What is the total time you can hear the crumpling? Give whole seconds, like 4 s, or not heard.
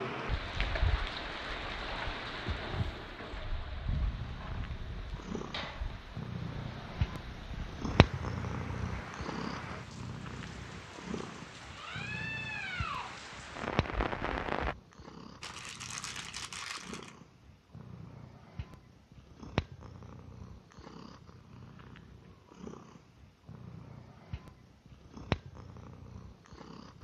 2 s.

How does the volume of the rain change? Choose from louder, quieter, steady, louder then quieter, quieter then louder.
quieter then louder.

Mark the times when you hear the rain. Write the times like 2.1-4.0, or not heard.
0.0-14.8.